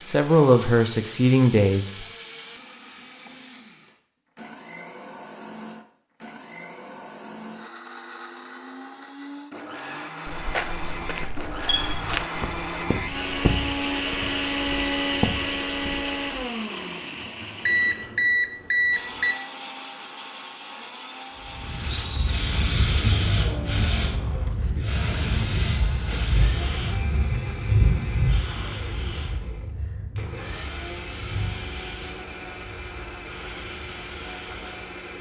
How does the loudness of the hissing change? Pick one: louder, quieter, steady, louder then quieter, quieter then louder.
quieter.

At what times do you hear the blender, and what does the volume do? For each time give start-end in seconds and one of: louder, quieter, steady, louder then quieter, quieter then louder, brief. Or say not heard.
0.0-35.1 louder then quieter.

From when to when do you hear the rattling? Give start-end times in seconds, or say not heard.
21.9-22.4.